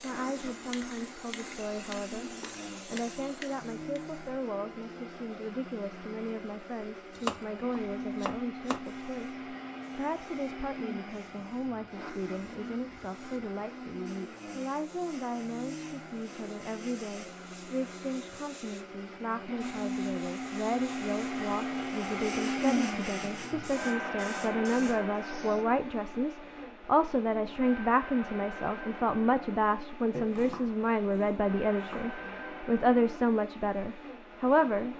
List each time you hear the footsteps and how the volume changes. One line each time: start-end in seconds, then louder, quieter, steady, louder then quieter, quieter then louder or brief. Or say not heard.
not heard.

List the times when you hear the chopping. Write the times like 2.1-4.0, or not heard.
7.2-8.8, 30.1-32.1.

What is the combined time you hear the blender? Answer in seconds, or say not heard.
35 s.